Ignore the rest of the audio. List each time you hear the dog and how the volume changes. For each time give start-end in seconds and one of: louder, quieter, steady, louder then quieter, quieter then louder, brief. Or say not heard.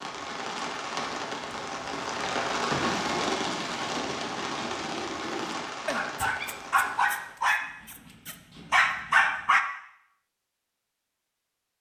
2.7-9.6 louder.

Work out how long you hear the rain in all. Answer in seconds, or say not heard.
7 s.